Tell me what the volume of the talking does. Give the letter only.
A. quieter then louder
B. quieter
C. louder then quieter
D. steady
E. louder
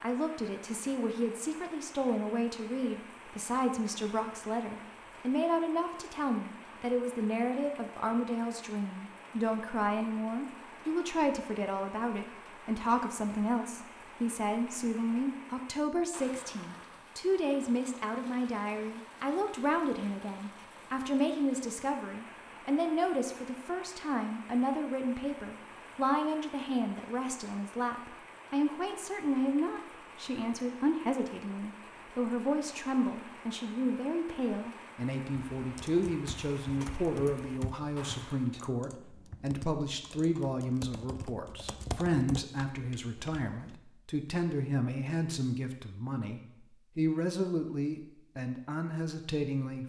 D.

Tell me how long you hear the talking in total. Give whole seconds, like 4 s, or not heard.
50 s.